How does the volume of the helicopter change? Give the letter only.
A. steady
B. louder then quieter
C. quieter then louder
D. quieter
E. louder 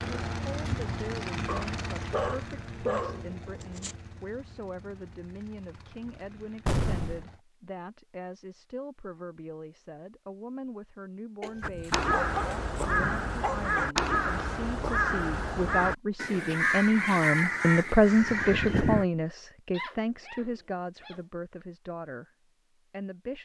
D.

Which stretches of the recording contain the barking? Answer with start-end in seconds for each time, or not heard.
1.4-4.0, 11.4-13.9, 19.7-21.2.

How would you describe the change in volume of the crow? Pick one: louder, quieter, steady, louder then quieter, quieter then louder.
steady.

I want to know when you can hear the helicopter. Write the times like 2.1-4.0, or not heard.
0.0-7.5.